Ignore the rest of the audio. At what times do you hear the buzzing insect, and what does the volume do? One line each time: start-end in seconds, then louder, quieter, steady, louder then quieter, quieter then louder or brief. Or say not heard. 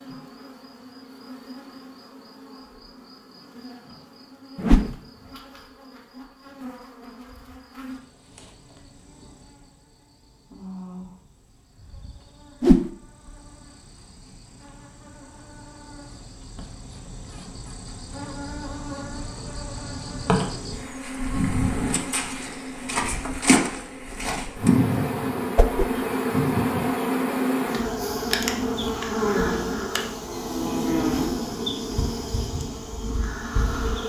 0.0-34.0 louder.